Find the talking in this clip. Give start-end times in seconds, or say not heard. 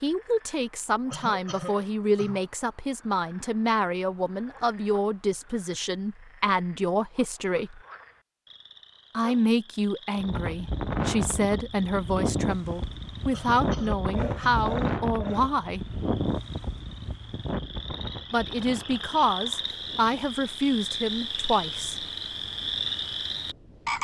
0.0-7.8, 9.2-15.8, 18.3-21.9.